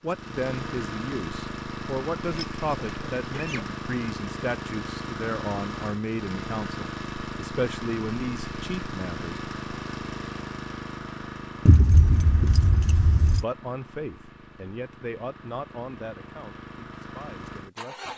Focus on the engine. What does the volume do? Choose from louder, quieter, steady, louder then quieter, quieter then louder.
quieter.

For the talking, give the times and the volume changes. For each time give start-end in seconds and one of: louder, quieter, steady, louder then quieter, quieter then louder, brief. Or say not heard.
0.0-9.4 steady
13.4-18.1 quieter.